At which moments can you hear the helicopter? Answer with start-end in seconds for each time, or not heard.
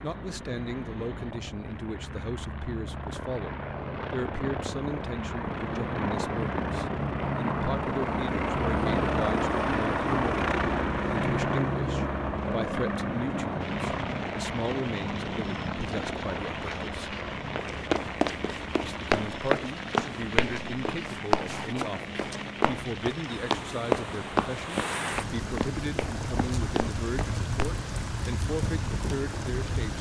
0.0-29.9.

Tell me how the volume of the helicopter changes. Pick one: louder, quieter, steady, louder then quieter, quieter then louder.
louder then quieter.